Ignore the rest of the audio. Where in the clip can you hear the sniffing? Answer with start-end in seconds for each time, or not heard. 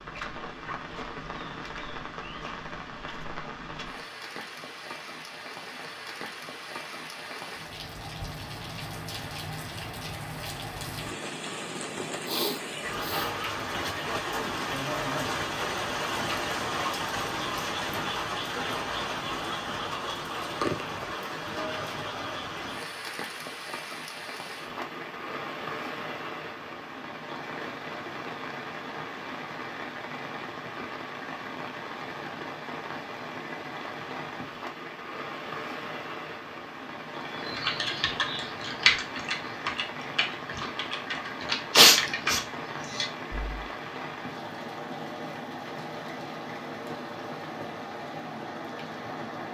12.2-13.3, 41.7-42.4.